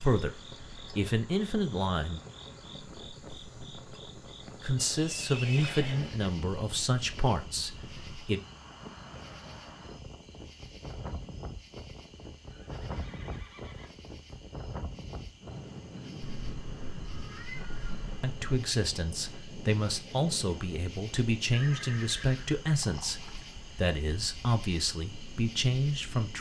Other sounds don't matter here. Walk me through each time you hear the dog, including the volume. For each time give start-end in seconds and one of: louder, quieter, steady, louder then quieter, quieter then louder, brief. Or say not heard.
not heard.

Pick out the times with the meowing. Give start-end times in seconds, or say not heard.
16.2-18.2.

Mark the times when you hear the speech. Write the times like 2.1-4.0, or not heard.
0.0-2.2, 4.6-8.4, 18.1-26.3.